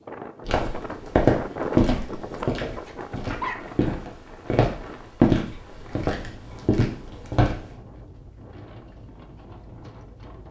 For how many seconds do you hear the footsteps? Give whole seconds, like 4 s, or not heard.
7 s.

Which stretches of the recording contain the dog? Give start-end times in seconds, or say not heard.
1.9-3.8.